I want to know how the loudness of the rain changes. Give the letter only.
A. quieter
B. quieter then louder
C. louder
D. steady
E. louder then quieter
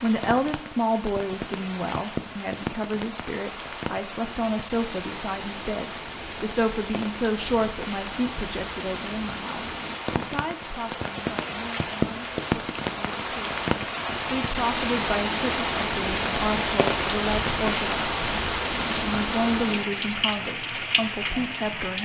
C.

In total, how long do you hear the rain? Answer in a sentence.
You can hear the rain for 22 seconds altogether.